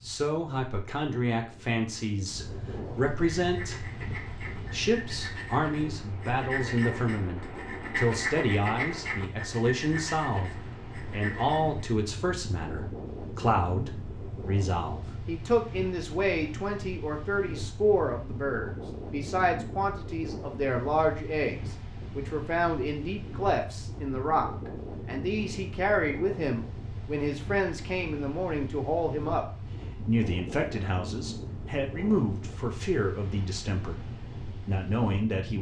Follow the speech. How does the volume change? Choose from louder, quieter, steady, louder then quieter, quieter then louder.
steady.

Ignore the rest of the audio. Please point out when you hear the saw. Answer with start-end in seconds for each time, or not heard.
3.4-11.8.